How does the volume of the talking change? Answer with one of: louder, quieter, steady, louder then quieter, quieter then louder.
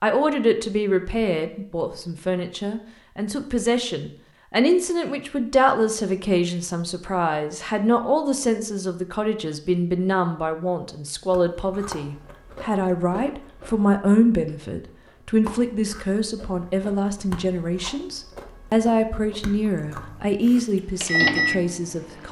steady.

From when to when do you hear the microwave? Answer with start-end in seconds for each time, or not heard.
19.9-22.2.